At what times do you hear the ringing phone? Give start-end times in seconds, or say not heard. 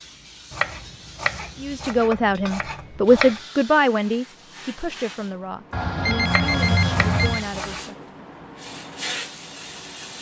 5.7-7.5.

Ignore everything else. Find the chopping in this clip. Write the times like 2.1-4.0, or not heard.
0.5-3.4, 6.2-7.8.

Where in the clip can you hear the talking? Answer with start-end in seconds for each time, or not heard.
1.6-8.1.